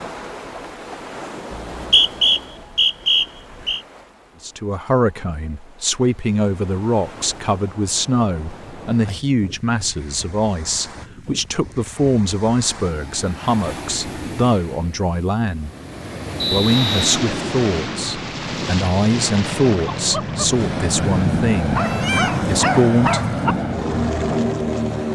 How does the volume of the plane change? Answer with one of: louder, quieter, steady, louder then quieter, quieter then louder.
louder.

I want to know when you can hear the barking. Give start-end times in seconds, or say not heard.
21.8-23.6.